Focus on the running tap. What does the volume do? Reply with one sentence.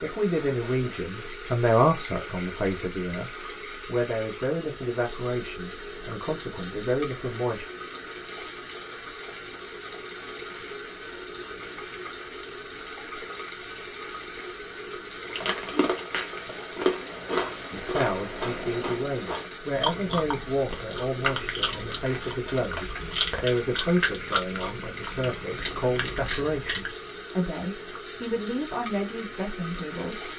The volume of the running tap stays about the same.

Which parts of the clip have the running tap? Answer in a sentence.
The running tap can be heard from 0.0 to 30.3 s.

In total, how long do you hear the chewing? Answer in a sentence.
The chewing can be heard for 12 seconds in total.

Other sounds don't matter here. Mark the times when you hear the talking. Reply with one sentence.
You can hear the talking from 0.0 to 7.7 s and from 17.7 to 30.2 s.